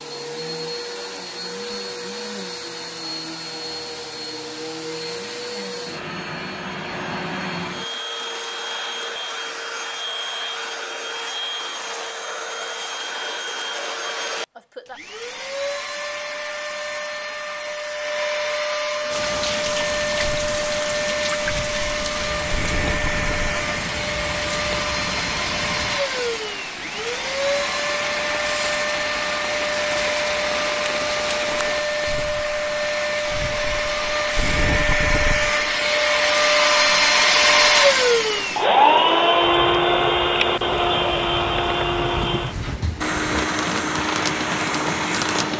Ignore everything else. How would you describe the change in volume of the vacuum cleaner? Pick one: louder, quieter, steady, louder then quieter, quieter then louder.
louder.